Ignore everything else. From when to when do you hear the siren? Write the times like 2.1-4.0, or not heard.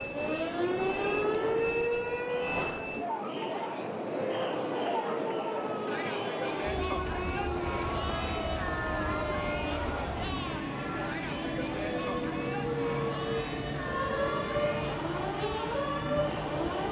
0.0-2.6, 4.2-10.1, 11.7-16.8.